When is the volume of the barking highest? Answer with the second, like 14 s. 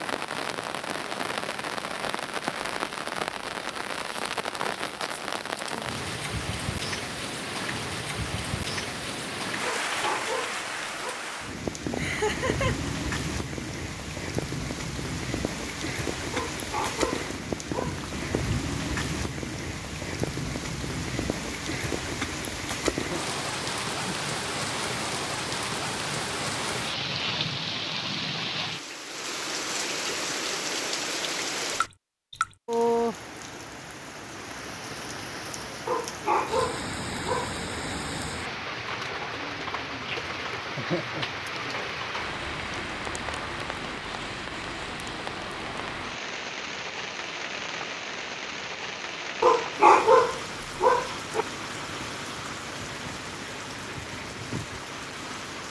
50 s.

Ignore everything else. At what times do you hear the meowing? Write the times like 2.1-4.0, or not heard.
not heard.